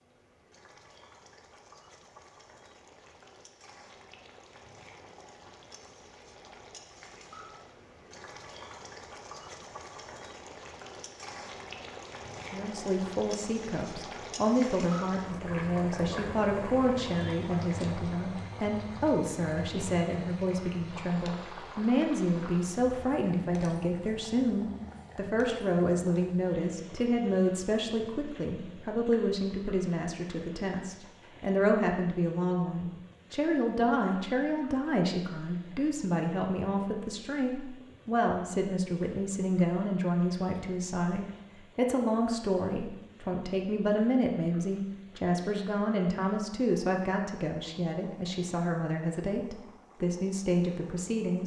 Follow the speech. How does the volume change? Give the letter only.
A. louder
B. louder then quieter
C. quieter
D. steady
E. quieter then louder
D.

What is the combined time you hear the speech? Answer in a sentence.
You can hear the speech for 39 seconds altogether.